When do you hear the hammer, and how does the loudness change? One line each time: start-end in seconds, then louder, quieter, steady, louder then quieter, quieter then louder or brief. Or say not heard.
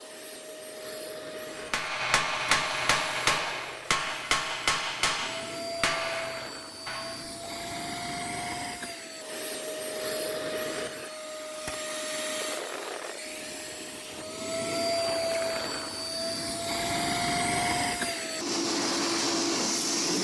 1.6-7.5 quieter.